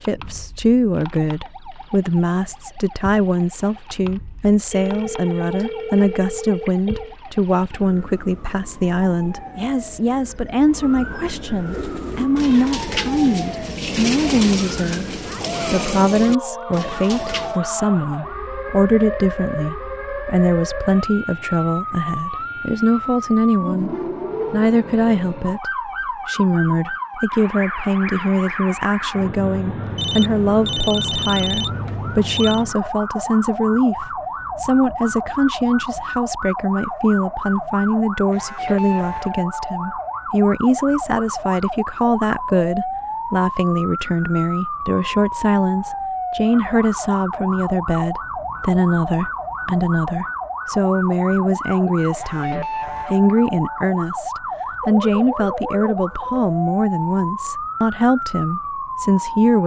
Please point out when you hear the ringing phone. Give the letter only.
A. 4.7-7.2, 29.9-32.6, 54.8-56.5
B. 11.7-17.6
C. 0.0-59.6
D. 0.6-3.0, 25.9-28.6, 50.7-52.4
A.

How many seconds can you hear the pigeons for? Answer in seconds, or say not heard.
6 s.